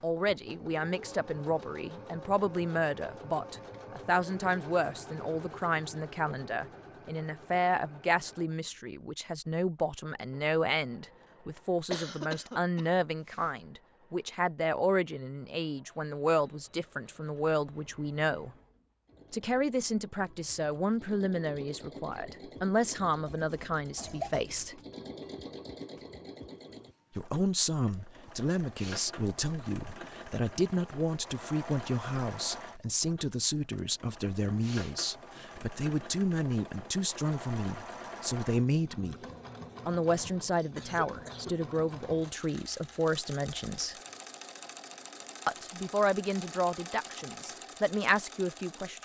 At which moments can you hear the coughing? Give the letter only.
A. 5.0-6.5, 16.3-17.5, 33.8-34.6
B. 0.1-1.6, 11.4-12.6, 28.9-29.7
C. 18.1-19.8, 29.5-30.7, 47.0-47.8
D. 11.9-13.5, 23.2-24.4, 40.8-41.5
D.